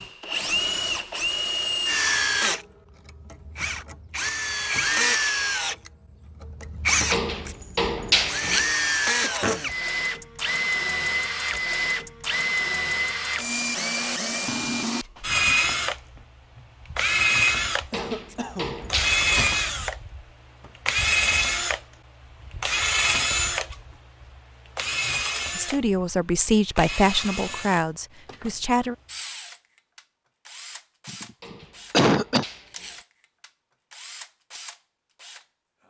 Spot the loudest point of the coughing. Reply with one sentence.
The volume of the coughing peaks at 32 seconds.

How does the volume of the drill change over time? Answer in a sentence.
The loudness of the drill goes down.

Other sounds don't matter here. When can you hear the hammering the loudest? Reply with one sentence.
The volume of the hammering peaks at 8 seconds.